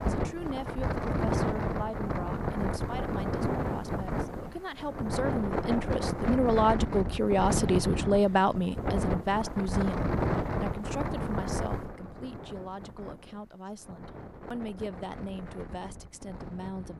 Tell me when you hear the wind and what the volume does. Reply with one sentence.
You can hear the wind from 0.0 to 16.9 s, getting quieter.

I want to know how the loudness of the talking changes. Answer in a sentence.
The volume of the talking goes up, then down.